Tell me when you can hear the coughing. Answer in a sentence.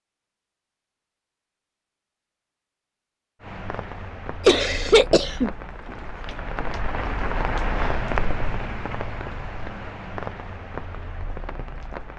The coughing can be heard from 4.5 to 5.5 s.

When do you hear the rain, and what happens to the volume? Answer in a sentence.
The rain can be heard from 3.4 to 12.1 s, getting louder then quieter.